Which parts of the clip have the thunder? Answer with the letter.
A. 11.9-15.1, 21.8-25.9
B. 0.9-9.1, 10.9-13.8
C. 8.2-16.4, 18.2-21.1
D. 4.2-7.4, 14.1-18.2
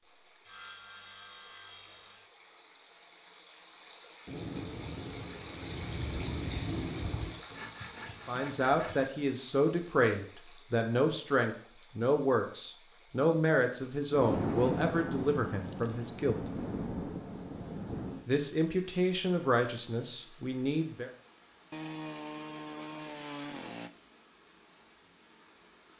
D.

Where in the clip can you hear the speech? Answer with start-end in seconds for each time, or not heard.
8.2-16.4, 18.2-21.1.